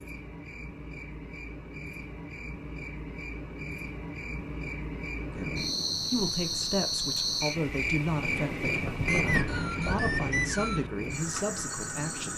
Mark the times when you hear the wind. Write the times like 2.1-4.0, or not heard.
5.3-12.3.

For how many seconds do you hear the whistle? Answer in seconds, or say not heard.
2 s.